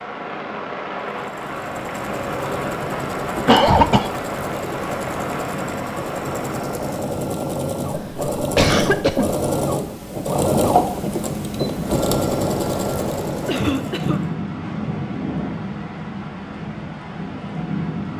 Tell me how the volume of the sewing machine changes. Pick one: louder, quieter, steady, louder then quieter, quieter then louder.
louder.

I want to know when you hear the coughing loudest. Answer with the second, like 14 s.
4 s.